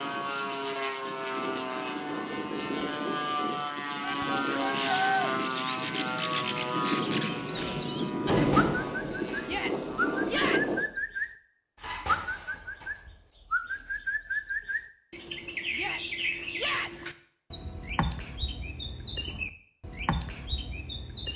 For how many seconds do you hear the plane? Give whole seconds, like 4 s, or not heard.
11 s.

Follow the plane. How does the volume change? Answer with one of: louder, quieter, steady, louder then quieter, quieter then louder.
steady.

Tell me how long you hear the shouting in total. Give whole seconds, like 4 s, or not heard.
4 s.